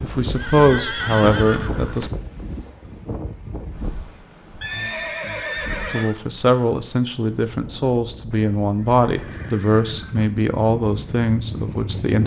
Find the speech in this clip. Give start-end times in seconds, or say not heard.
0.0-2.1, 5.9-12.2.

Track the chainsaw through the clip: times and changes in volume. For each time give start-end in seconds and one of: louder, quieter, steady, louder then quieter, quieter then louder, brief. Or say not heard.
not heard.